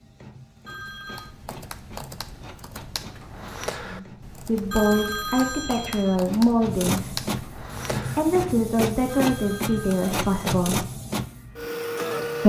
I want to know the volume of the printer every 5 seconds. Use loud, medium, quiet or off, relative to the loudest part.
quiet, loud, loud.